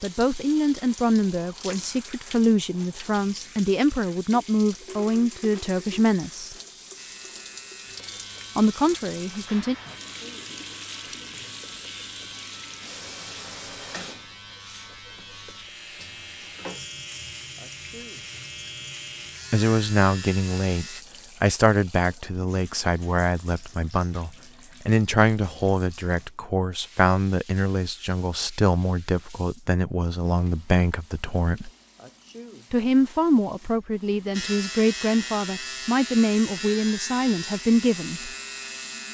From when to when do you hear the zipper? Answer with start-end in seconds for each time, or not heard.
not heard.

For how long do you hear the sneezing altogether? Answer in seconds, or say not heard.
2 s.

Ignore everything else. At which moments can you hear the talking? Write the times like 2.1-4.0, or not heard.
0.0-6.5, 8.6-9.8, 19.5-31.7, 32.7-38.3.